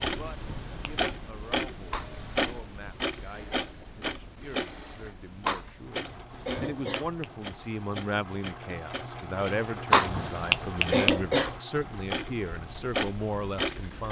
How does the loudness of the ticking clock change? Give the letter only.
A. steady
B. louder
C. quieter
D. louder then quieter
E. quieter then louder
E.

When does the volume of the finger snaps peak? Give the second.
11 s.